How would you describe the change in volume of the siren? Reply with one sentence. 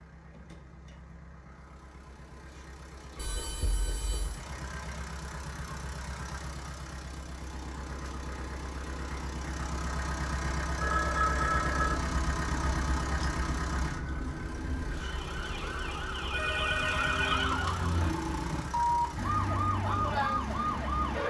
The volume of the siren goes up.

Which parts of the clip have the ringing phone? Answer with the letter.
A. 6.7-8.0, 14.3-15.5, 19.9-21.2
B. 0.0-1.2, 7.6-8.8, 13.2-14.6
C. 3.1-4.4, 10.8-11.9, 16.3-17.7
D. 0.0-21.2
C.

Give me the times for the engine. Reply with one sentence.
The engine can be heard from 0.0 to 21.2 s.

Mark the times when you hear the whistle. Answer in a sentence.
The whistle can't be heard in this clip.